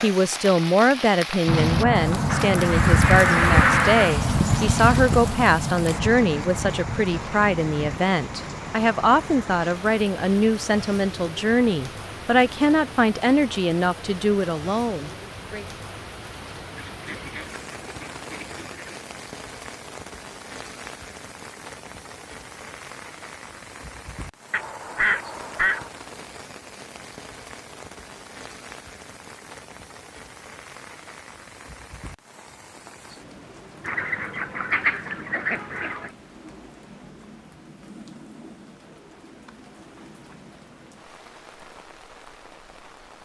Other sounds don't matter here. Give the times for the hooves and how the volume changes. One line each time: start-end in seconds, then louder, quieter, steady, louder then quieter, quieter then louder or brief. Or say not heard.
1.4-9.4 quieter.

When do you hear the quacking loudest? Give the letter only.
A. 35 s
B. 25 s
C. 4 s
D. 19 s
C.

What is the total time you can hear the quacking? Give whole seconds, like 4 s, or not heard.
8 s.